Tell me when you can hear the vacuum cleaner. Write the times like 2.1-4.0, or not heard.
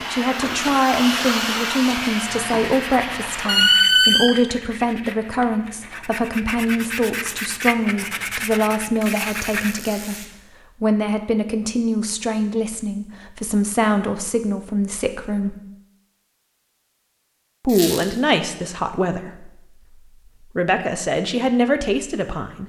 0.0-4.0.